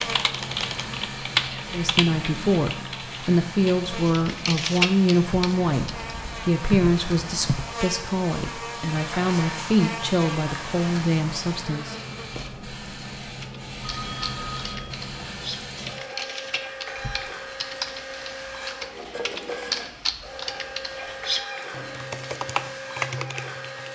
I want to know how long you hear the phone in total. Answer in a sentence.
You can hear the phone for 3 seconds altogether.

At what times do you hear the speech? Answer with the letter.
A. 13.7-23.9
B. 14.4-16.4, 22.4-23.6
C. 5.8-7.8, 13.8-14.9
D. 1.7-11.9
D.